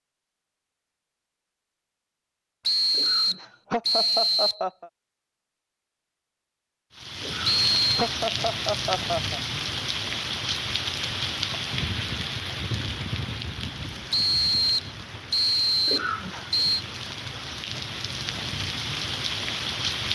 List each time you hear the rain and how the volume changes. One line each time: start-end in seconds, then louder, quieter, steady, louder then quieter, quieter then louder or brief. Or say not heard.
7.0-20.1 quieter then louder.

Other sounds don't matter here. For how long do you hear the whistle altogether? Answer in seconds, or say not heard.
5 s.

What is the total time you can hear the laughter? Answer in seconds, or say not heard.
5 s.